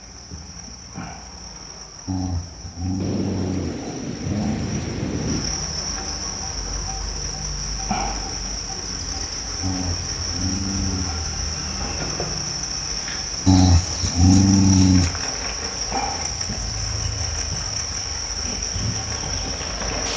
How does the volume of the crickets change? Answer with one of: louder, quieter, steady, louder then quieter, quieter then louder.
louder.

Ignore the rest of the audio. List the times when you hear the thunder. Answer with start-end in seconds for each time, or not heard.
3.0-5.6.